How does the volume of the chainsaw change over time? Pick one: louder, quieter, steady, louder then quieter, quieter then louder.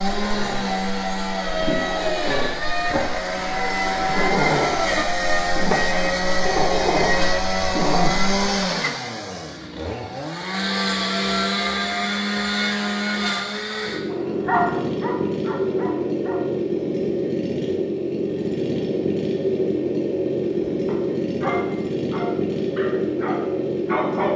steady.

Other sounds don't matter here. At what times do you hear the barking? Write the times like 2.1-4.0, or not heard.
0.1-8.4, 14.1-16.4, 20.6-24.3.